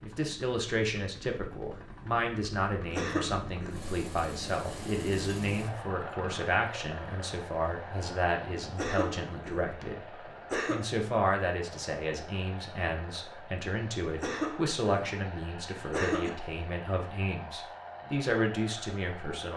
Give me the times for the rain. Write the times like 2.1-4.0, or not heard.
not heard.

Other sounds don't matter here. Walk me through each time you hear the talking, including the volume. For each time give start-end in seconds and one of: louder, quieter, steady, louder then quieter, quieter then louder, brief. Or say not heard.
0.0-19.5 steady.